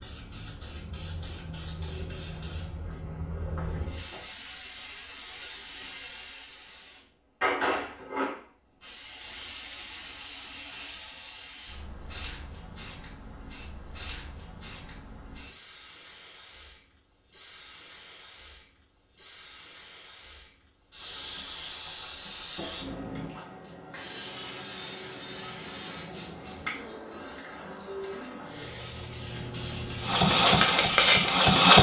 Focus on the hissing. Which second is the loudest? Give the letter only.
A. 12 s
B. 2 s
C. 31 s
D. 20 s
C.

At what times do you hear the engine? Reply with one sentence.
You can hear the engine from 30.1 to 31.7 s.